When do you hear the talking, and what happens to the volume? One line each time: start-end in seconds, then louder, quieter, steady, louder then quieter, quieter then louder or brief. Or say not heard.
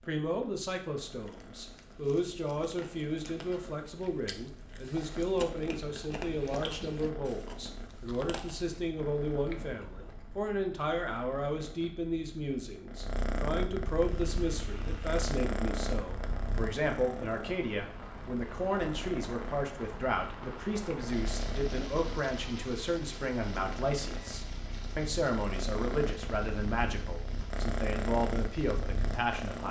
0.0-29.6 steady.